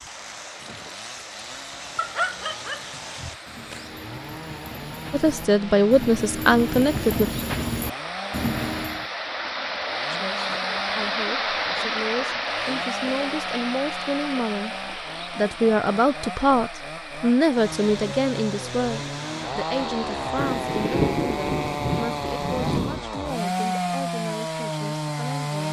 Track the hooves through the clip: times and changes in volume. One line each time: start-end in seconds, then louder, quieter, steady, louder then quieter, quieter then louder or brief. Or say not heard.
0.4-9.1 louder.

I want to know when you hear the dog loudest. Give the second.
2 s.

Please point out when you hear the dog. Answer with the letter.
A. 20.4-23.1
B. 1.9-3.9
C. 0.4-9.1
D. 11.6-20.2
B.